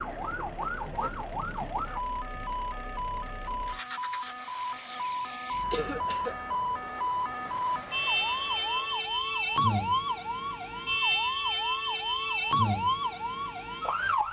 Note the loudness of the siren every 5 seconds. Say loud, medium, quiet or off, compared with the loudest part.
medium, loud, loud.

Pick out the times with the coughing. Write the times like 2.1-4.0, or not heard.
5.7-6.4.